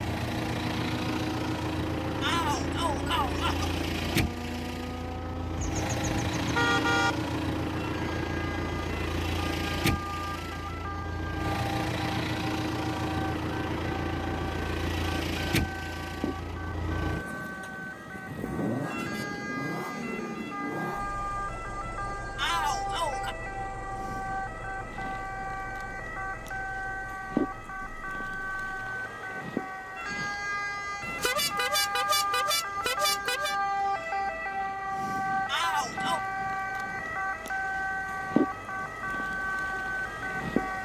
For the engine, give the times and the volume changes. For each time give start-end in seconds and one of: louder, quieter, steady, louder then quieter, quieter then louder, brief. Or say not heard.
0.0-40.7 quieter.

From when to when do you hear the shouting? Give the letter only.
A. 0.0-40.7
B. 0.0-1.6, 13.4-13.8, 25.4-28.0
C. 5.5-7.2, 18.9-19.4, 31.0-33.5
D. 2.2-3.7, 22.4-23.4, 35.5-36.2
D.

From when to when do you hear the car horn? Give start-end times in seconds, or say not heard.
5.5-7.2, 18.9-19.4, 31.0-33.5.